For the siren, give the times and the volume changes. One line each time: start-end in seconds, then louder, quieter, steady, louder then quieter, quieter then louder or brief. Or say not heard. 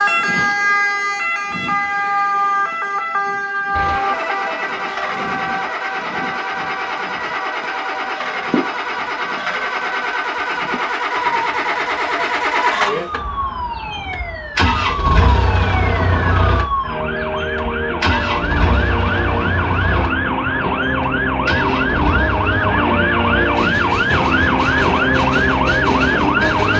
0.0-26.7 quieter then louder.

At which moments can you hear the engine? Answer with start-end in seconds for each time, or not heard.
3.7-26.7.